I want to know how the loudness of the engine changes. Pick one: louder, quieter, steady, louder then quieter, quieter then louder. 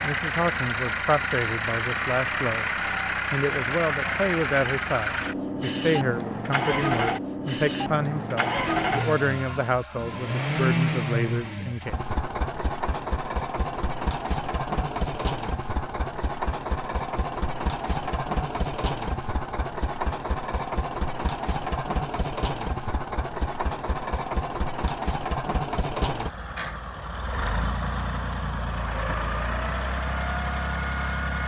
steady.